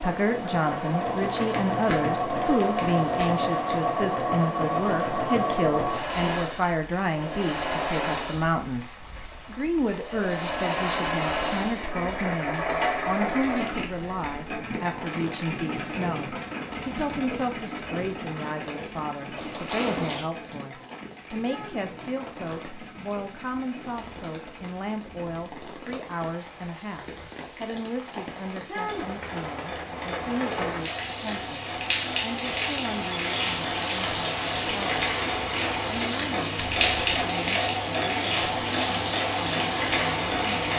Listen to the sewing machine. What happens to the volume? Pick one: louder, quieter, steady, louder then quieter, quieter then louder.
quieter then louder.